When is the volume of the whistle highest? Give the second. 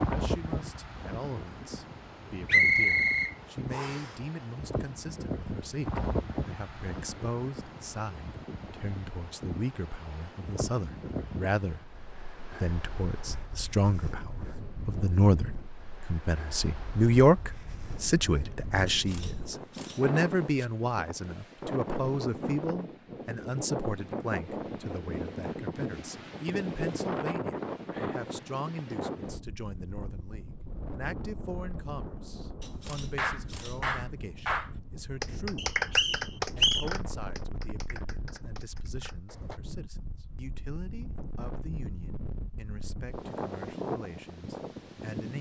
3 s.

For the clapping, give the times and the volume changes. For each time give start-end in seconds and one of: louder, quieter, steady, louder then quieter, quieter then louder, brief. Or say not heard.
33.1-39.6 quieter.